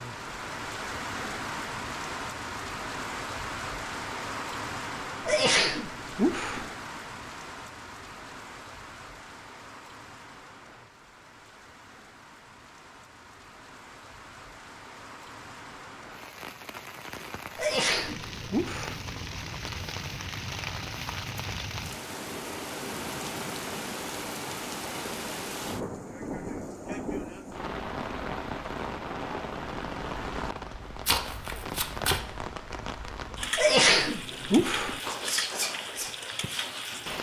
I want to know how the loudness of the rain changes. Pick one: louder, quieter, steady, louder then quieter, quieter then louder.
quieter then louder.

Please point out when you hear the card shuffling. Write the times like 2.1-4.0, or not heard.
31.1-32.2.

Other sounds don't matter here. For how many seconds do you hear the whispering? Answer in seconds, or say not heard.
2 s.